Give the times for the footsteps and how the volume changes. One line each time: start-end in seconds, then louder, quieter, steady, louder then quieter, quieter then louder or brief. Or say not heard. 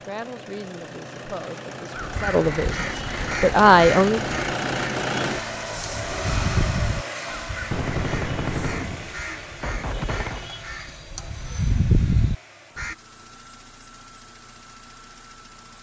not heard.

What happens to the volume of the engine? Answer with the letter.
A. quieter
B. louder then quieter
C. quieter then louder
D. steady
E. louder
B.